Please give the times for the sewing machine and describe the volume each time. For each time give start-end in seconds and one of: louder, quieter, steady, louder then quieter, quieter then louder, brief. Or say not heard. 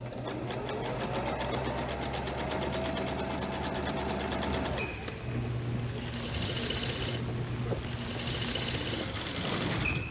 0.0-10.0 steady.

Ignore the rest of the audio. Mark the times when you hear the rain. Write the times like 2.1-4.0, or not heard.
4.6-10.0.